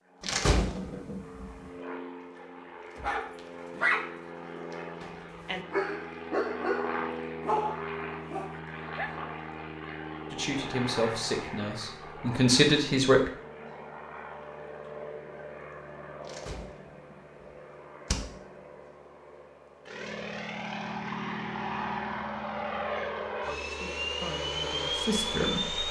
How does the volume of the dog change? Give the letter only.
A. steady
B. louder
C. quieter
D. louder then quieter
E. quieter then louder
E.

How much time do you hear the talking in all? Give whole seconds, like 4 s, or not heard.
5 s.